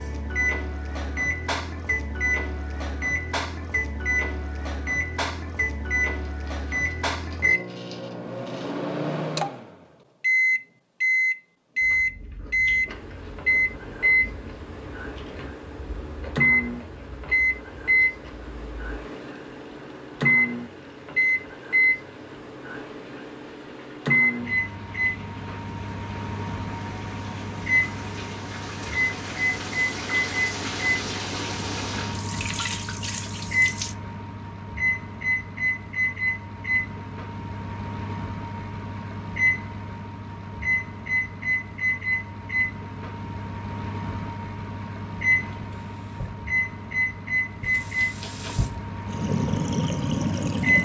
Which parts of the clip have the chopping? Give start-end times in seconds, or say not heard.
not heard.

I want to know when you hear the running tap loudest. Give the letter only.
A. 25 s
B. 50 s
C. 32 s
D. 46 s
B.